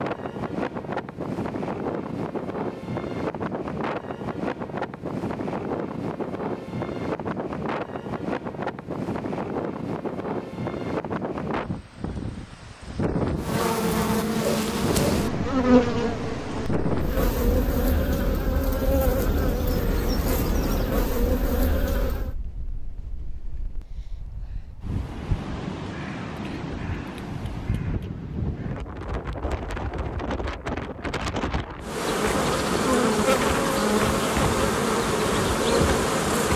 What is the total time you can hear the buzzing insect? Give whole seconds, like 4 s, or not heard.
14 s.